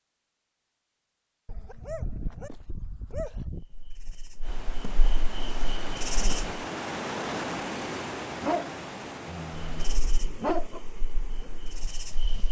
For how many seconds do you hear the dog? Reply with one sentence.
You can hear the dog for 5 seconds altogether.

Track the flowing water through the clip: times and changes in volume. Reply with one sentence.
You can hear the flowing water from 4.4 to 12.4 s, getting louder then quieter.